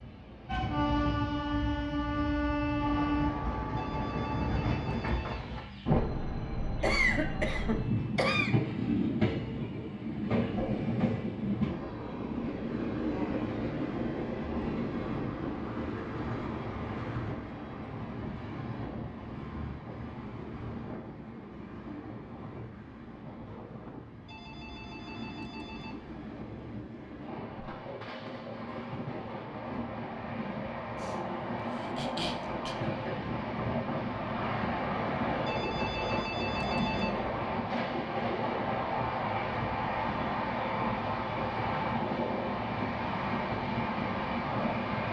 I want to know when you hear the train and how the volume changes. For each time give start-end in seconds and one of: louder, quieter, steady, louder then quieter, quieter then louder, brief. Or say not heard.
0.0-45.0 quieter then louder.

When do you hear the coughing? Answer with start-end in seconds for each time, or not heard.
6.8-8.5, 30.9-32.8.